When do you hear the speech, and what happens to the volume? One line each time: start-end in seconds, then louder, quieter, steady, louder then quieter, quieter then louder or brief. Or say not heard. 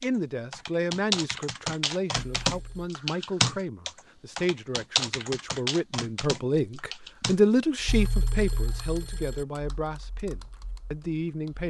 0.0-11.6 louder then quieter.